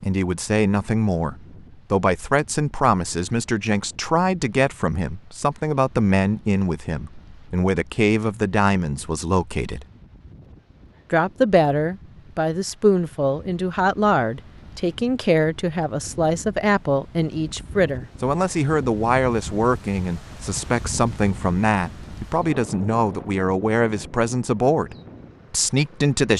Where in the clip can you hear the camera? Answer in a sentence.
You can't hear the camera here.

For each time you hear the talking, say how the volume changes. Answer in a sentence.
You can hear the talking from 0.0 to 9.8 s, at a steady volume; and from 11.1 to 26.3 s, at a steady volume.